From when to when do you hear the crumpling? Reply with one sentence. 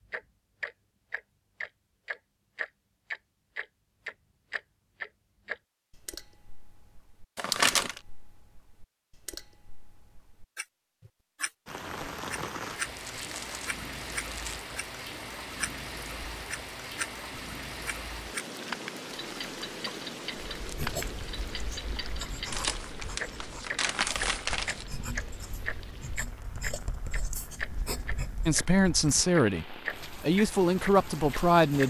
The crumpling can be heard from 7.3 to 8.0 s, from 12.9 to 14.7 s and from 22.5 to 24.9 s.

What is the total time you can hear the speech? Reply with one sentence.
The speech can be heard for 3 seconds in total.